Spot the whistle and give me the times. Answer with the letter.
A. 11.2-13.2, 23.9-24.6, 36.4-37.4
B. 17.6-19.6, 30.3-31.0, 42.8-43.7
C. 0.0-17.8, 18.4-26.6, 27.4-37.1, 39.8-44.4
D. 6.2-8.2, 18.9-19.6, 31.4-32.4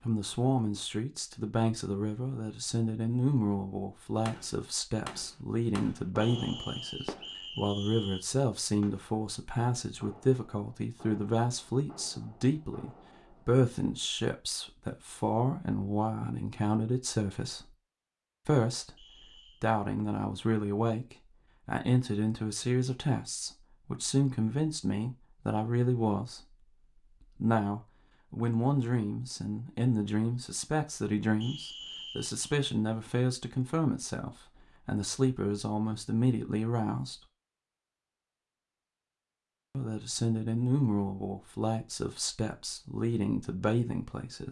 D.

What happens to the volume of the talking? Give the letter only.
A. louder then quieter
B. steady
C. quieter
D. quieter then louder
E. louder
B.